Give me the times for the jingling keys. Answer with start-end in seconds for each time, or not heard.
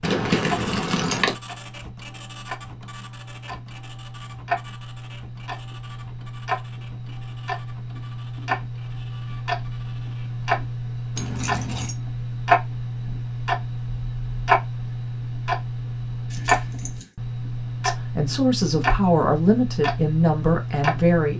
0.0-1.4, 11.2-11.9, 16.3-17.1.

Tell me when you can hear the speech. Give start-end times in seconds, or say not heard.
17.9-21.3.